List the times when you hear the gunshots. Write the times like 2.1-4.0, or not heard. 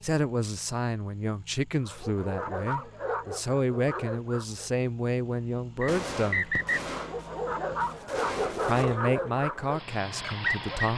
5.8-8.8.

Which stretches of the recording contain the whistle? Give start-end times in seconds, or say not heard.
5.8-6.8.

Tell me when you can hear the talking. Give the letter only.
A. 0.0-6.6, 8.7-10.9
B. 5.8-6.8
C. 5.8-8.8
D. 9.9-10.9
A.